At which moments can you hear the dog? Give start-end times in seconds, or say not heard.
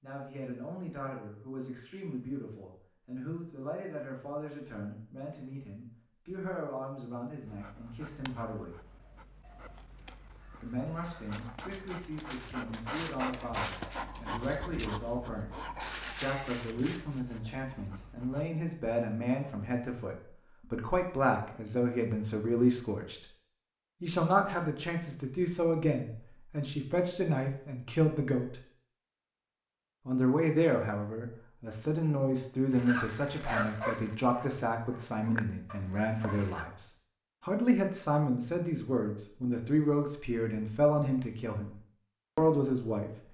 7.4-18.5, 32.7-36.6.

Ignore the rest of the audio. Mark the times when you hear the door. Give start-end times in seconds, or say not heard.
not heard.